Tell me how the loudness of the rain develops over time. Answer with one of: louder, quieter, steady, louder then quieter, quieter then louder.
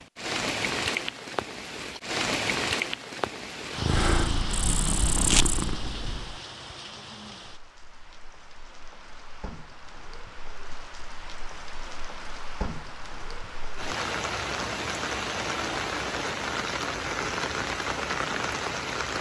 quieter then louder.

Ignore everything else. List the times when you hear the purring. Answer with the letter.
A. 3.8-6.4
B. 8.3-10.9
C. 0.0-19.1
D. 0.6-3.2
A.